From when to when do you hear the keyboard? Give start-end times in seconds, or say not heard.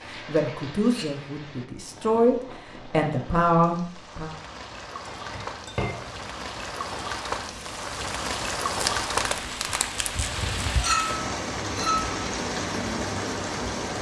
not heard.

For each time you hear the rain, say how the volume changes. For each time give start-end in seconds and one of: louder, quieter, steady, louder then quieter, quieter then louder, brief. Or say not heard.
0.0-13.9 louder.